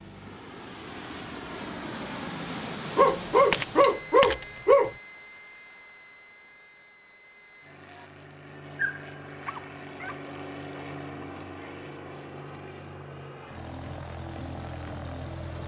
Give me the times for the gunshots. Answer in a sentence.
You can hear the gunshots from 3.3 to 5.0 s.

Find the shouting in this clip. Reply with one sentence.
The shouting can't be heard in this clip.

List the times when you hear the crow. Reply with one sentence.
The crow can't be heard in this clip.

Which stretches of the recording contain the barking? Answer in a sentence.
You can hear the barking from 3.0 to 4.9 s and from 8.8 to 10.2 s.